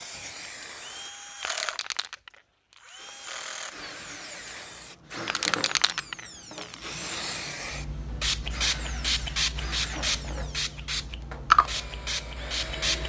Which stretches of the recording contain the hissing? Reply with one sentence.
You can hear the hissing from 0.0 to 13.0 s.